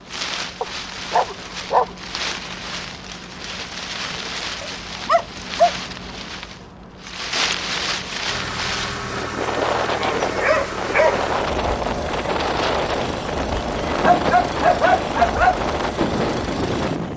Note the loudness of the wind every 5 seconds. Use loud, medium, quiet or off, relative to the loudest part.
medium, loud, loud, loud.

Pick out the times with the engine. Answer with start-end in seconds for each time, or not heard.
8.2-17.1.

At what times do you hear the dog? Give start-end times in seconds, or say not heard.
0.6-1.9, 4.6-5.8, 10.2-11.2, 14.0-15.6.